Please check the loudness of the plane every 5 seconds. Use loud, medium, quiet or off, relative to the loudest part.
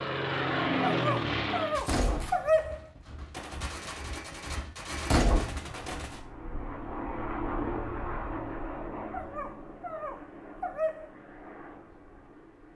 loud, medium, quiet.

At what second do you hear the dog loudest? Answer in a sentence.
The volume of the dog peaks at 2 seconds.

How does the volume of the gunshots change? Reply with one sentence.
The volume of the gunshots goes up.